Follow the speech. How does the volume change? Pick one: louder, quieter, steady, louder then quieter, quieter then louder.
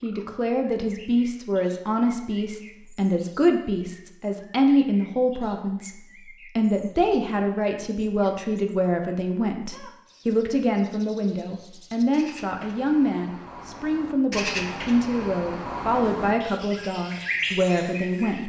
steady.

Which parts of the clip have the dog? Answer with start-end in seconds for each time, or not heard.
not heard.